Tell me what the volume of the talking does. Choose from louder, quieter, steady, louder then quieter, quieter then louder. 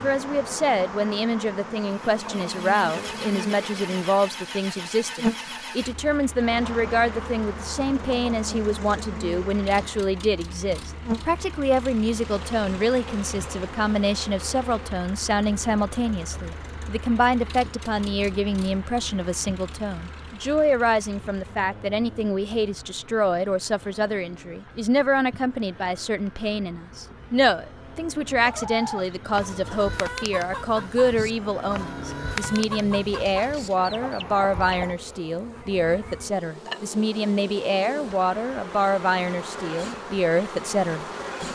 steady.